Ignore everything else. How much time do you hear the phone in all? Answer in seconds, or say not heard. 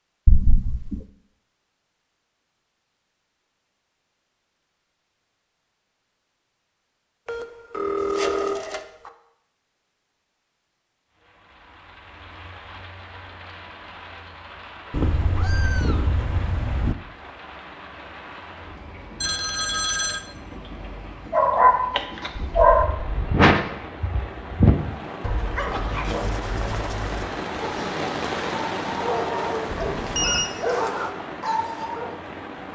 4 s.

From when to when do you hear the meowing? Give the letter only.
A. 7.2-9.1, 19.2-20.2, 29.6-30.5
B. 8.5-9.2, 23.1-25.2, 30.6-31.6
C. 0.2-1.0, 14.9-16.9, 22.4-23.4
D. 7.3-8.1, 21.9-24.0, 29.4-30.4
C.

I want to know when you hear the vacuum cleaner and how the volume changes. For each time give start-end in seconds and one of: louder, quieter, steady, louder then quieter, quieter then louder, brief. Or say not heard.
not heard.